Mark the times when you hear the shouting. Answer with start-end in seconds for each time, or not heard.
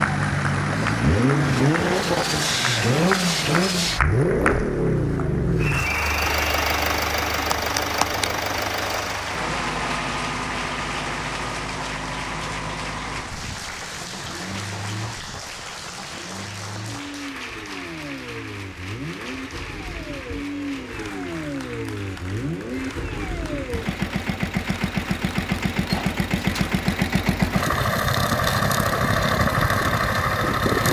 not heard.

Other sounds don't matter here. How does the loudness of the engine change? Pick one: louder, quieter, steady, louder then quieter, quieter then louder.
quieter then louder.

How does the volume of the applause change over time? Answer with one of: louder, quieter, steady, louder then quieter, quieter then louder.
quieter.